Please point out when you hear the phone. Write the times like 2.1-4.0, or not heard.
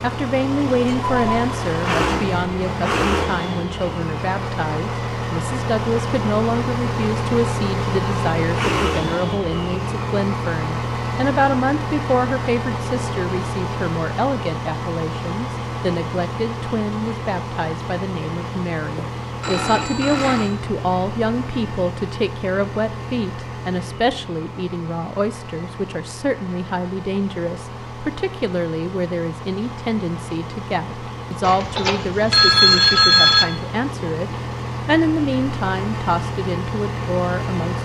0.8-1.4, 18.9-20.6, 31.4-33.5.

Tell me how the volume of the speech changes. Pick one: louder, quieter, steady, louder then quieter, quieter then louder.
steady.